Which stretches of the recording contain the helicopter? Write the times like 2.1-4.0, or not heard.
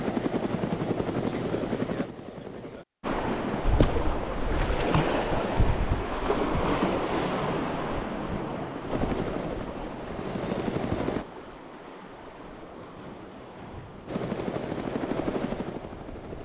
0.0-2.9, 8.9-11.2, 14.1-16.4.